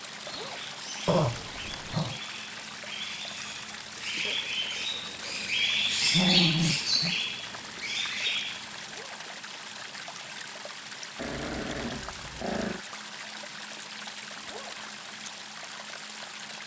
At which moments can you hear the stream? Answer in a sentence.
The stream can be heard from 0.0 to 16.6 s.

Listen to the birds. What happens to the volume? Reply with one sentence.
The loudness of the birds goes up, then down.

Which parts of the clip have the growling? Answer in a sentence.
The growling can be heard from 1.1 to 2.2 s, from 6.0 to 7.2 s and from 11.2 to 12.8 s.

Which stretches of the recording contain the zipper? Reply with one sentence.
The zipper can be heard from 0.2 to 0.7 s, from 8.8 to 9.3 s and from 14.4 to 14.8 s.